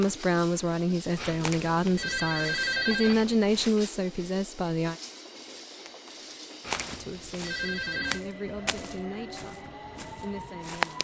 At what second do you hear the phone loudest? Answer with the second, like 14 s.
3 s.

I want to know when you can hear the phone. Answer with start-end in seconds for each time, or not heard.
1.1-3.8, 6.6-8.2.